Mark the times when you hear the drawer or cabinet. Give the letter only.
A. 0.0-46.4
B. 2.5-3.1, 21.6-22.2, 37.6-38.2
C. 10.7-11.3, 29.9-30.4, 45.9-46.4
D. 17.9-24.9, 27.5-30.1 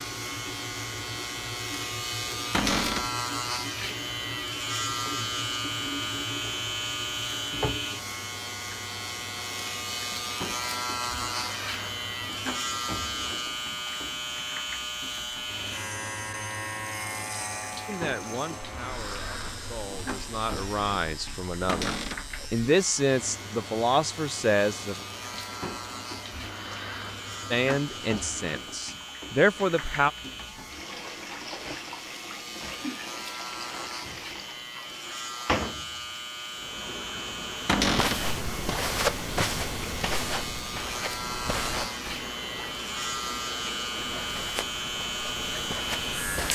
B.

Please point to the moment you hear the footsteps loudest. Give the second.
39 s.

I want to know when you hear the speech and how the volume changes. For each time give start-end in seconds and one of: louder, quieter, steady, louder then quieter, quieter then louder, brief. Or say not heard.
17.9-24.9 louder
27.5-30.1 brief.